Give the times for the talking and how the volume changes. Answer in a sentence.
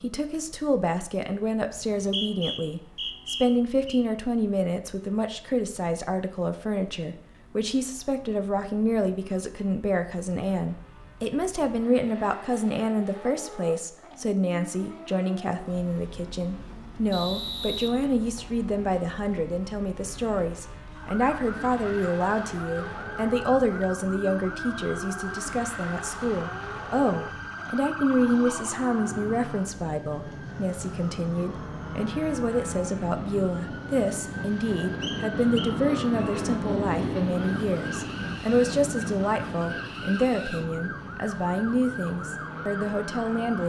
You can hear the talking from 0.0 to 43.6 s, at a steady volume.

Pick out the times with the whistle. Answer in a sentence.
You can hear the whistle from 1.9 to 4.0 s, from 17.1 to 18.6 s and from 35.0 to 36.4 s.